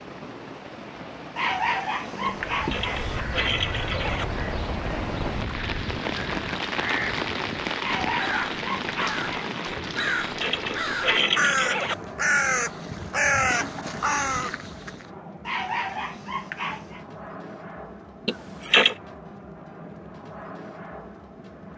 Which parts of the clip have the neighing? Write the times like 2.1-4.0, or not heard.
2.2-4.2, 9.9-11.9, 18.2-18.9.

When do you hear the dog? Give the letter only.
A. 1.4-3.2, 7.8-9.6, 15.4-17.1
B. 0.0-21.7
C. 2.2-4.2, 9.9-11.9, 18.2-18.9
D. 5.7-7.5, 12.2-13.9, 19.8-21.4
A.